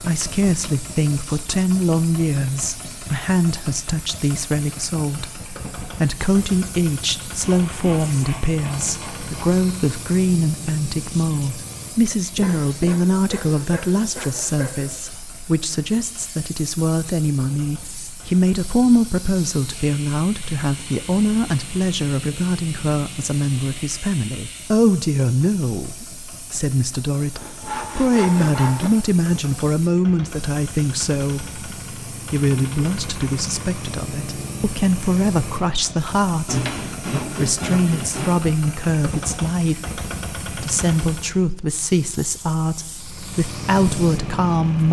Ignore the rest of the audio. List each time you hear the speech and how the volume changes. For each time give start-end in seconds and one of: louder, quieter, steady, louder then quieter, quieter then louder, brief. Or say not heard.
0.0-44.8 steady.